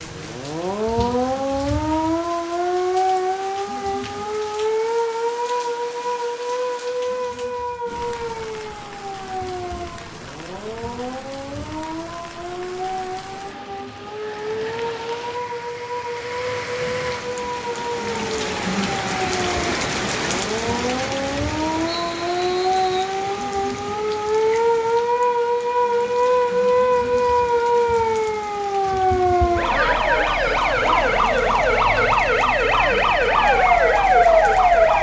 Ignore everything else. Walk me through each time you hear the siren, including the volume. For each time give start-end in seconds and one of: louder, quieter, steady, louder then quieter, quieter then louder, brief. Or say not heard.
0.0-34.9 quieter then louder.